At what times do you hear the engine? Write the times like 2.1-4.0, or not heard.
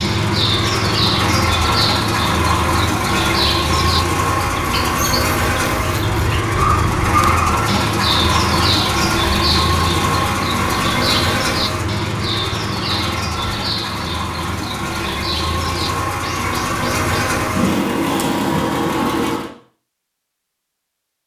0.0-19.5.